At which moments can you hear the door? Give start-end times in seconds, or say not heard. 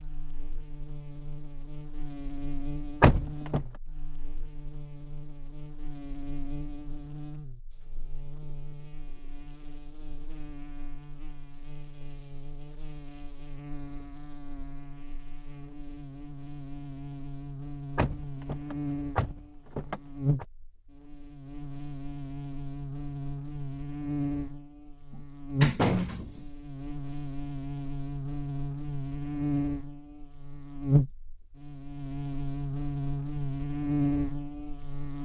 3.0-3.6, 17.9-20.4, 25.1-26.4.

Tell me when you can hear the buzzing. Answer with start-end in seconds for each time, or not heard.
0.0-35.2.